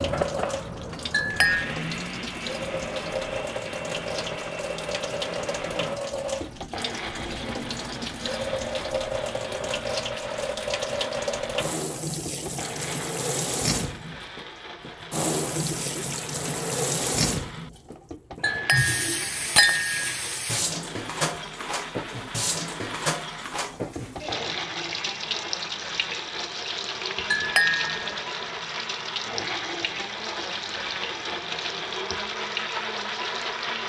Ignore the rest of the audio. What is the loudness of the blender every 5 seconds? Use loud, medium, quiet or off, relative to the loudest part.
loud, medium, medium, medium, medium, loud, loud.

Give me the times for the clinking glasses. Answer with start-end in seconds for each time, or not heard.
1.1-1.7, 18.4-20.1, 27.3-28.1.